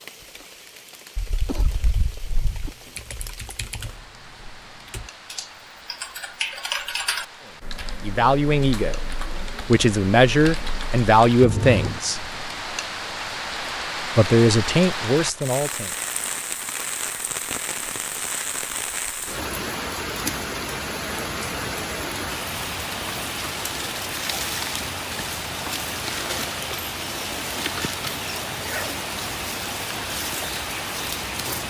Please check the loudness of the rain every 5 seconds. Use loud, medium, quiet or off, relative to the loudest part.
quiet, quiet, loud, loud, loud, loud, loud.